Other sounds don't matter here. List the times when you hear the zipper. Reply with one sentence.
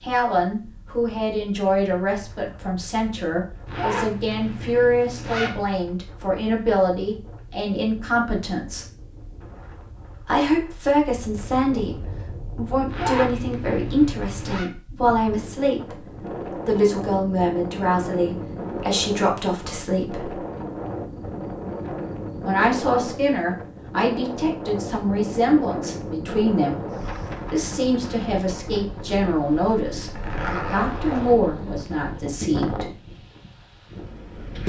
You can hear the zipper from 3.6 to 5.6 s, from 12.8 to 14.7 s and from 29.9 to 31.4 s.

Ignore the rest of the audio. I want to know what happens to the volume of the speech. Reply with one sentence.
The loudness of the speech stays about the same.